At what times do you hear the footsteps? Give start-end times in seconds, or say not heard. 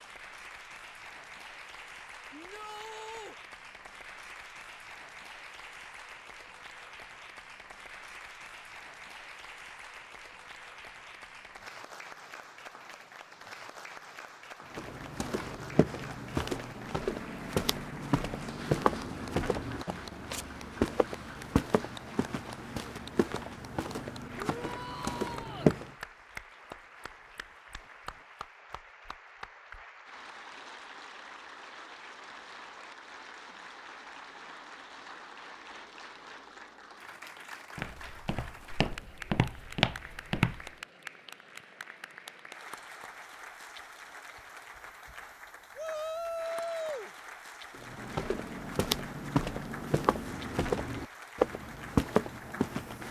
14.8-25.9, 37.8-40.7, 47.8-53.0.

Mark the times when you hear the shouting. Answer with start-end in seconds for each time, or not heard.
2.3-3.4, 24.4-25.8, 45.8-47.1.